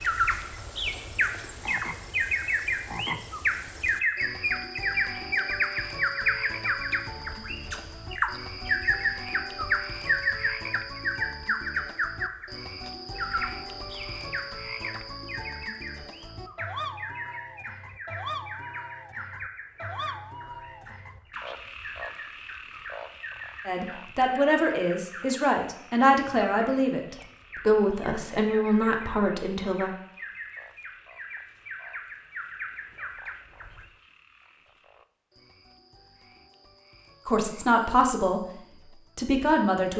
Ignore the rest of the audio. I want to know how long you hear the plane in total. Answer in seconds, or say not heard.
not heard.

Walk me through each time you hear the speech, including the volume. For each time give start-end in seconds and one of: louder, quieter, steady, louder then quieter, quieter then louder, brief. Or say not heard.
23.6-29.9 steady
37.2-39.9 brief.